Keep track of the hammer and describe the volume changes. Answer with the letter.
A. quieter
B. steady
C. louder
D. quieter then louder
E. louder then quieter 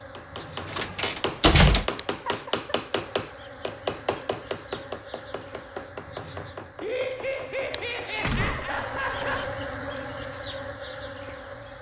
A.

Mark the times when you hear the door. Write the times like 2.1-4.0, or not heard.
0.7-1.9, 8.2-9.4.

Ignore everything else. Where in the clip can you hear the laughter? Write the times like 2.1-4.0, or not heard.
2.0-2.7, 6.8-9.6.